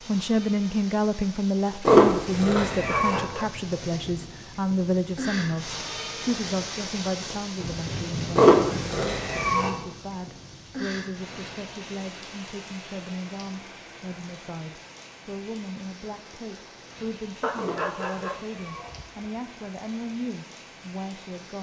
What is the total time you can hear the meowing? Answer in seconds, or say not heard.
4 s.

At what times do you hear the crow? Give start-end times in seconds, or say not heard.
not heard.